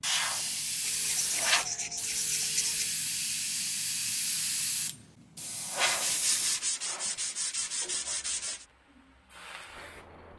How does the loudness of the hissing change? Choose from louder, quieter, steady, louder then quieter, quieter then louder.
quieter.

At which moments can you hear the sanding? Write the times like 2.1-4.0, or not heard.
0.8-3.0, 5.8-8.7.